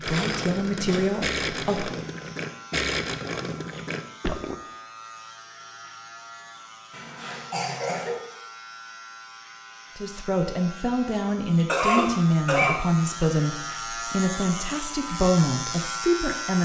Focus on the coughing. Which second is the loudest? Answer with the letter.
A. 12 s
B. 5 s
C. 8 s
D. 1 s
A.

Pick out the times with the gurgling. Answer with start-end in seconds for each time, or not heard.
0.0-4.6.